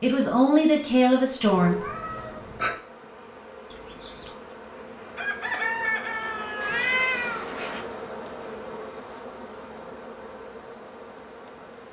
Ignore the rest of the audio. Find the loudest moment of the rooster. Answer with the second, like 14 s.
6 s.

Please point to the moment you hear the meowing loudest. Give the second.
7 s.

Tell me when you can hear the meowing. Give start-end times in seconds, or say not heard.
1.6-2.8, 6.6-7.8.